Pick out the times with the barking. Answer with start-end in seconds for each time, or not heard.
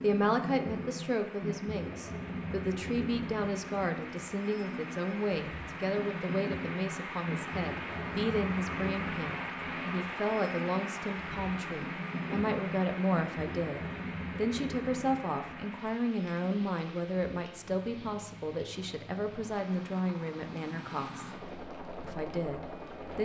not heard.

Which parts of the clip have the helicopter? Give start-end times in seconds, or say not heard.
0.0-23.2.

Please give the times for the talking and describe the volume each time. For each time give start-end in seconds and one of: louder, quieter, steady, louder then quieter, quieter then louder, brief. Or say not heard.
0.0-21.3 steady
22.0-23.2 brief.